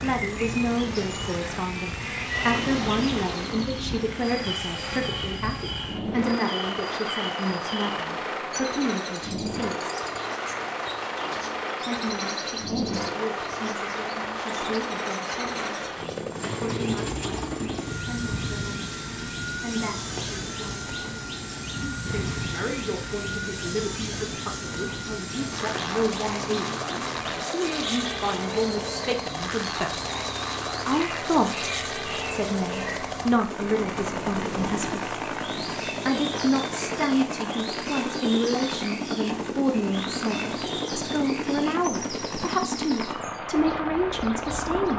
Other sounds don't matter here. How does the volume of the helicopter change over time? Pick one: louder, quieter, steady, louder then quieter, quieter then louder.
steady.